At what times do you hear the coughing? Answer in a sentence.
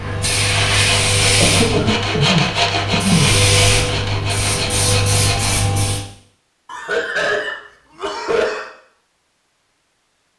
The coughing can be heard from 1.4 to 3.4 s and from 6.7 to 8.7 s.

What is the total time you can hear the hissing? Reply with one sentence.
You can hear the hissing for 6 seconds altogether.